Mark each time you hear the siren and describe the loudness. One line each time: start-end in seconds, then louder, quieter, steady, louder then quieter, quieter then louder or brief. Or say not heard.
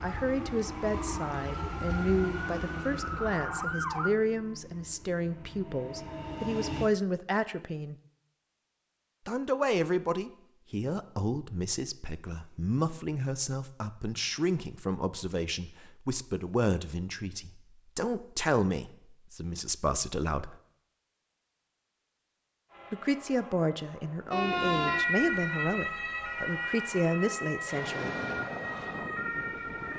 0.0-4.1 louder
24.3-29.9 quieter.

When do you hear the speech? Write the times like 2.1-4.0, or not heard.
0.0-8.0, 9.2-20.6, 22.9-28.1.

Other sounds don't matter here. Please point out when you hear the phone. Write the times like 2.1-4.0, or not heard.
not heard.